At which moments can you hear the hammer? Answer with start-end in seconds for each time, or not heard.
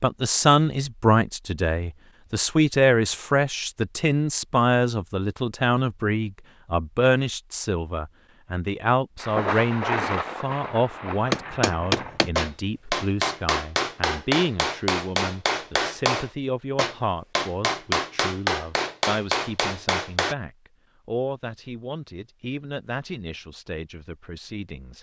11.2-20.4.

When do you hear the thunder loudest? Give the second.
10 s.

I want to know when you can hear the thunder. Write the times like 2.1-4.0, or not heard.
9.2-12.2.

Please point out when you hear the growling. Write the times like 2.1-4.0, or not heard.
not heard.